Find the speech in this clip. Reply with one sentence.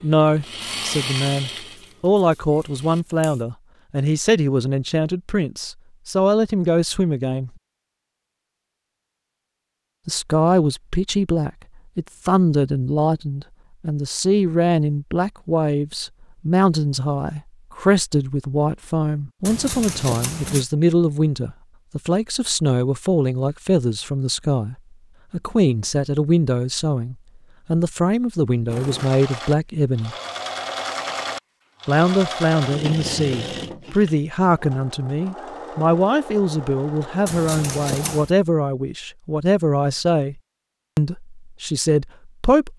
The speech can be heard from 0.0 to 7.5 s, from 10.1 to 30.1 s and from 31.9 to 42.7 s.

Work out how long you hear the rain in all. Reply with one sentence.
You can't hear the rain here.